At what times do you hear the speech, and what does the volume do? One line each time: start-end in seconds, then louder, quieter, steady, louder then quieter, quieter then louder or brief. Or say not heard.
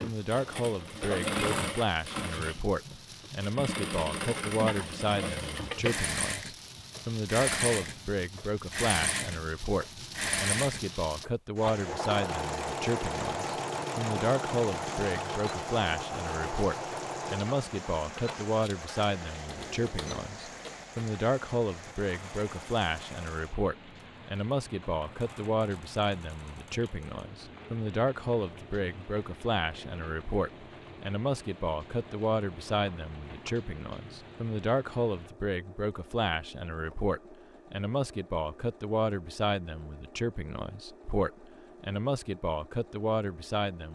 0.0-43.9 steady.